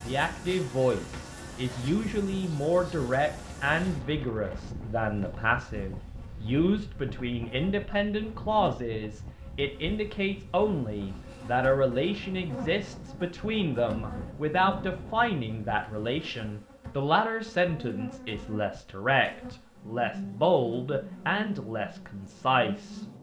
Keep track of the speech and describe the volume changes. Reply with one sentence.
The loudness of the speech stays about the same.